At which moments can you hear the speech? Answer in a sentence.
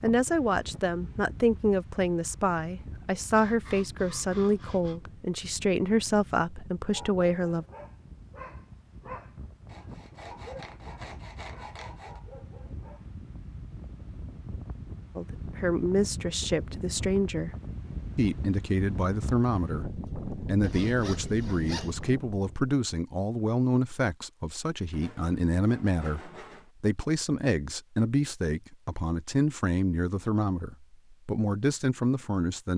You can hear the speech from 0.0 to 7.7 s, from 15.2 to 17.5 s and from 18.1 to 32.7 s.